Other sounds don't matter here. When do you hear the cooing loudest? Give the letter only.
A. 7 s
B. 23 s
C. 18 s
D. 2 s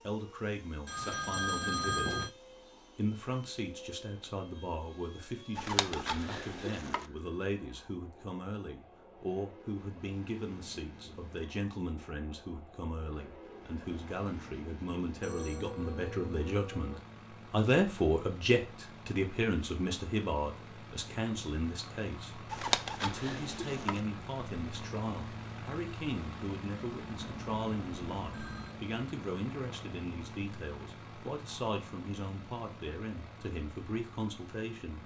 B.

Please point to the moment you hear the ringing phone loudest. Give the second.
2 s.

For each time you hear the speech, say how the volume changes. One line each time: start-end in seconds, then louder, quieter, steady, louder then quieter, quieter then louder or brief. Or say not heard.
0.1-2.2 brief
3.0-35.0 louder then quieter.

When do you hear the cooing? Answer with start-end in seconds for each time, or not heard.
5.5-7.0, 22.5-24.0.